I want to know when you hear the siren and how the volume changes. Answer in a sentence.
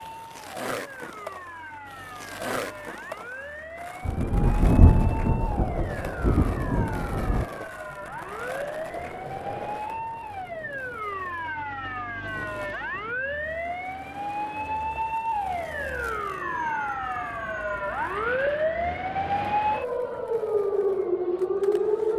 The siren can be heard from 0.0 to 22.1 s, getting louder.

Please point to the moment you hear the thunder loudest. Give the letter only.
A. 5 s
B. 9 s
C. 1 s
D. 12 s
A.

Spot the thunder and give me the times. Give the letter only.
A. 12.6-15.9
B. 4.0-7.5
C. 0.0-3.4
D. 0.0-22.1
B.